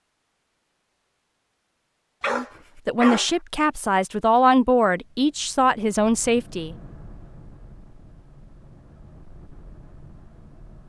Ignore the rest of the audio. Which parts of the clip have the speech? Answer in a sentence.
You can hear the speech from 2.3 to 6.8 s.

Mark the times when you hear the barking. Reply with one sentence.
You can hear the barking from 2.2 to 3.4 s.